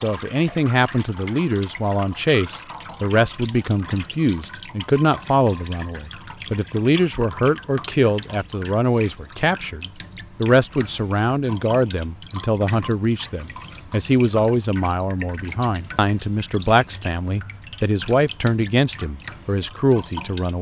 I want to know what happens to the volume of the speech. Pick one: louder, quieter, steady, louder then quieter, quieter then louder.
steady.